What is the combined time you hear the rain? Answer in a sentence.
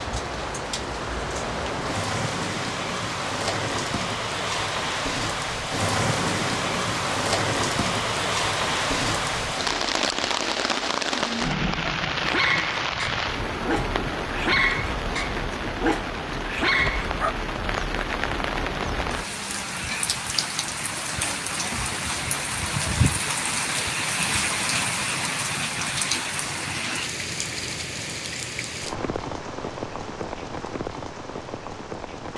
You can hear the rain for 32 seconds altogether.